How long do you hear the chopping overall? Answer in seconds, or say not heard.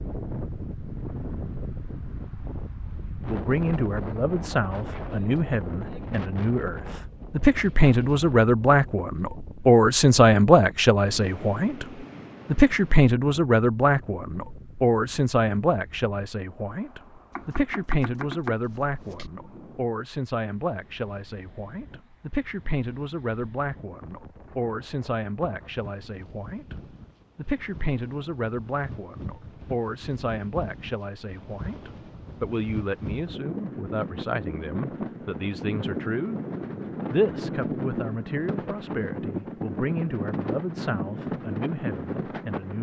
2 s.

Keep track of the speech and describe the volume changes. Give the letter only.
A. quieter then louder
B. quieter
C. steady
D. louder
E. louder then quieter
B.